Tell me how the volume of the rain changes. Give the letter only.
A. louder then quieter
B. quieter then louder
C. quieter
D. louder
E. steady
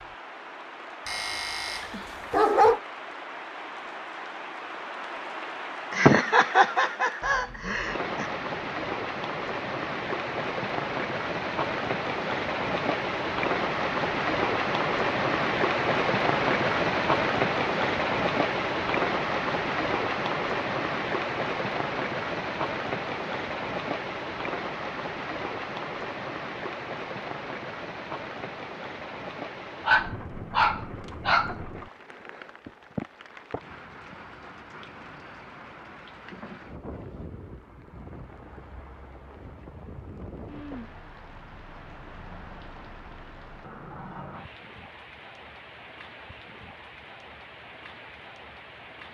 A.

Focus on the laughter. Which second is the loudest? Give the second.
6 s.